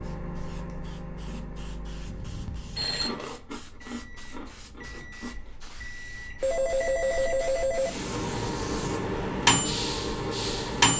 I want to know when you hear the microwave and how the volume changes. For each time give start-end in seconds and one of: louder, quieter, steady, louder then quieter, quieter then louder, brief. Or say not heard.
0.0-10.9 quieter then louder.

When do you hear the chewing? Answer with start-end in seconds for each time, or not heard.
2.8-5.5.